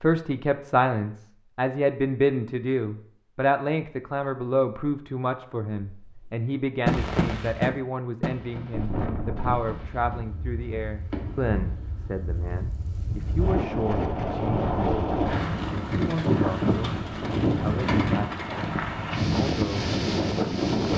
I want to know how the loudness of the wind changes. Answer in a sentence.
The volume of the wind goes up.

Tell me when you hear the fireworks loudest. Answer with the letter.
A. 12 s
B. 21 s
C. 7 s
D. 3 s
C.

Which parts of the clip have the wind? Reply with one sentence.
You can hear the wind from 8.7 to 20.9 s.